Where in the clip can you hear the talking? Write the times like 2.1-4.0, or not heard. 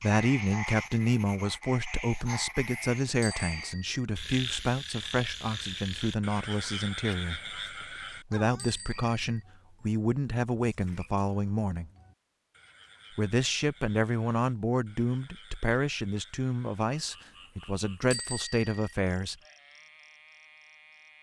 0.0-7.5, 8.3-11.9, 13.2-19.4.